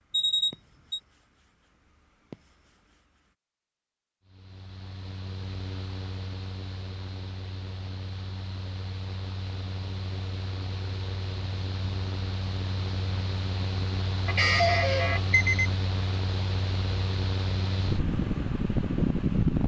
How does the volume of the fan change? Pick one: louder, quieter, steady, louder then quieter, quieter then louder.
louder.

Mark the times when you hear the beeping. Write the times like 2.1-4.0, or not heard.
0.1-1.0, 14.2-15.7.